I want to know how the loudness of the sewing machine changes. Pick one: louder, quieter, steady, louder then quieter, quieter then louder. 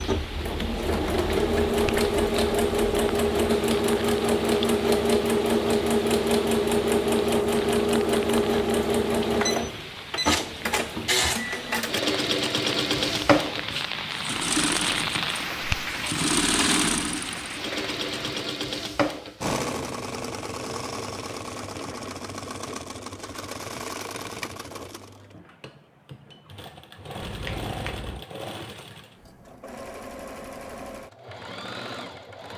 quieter.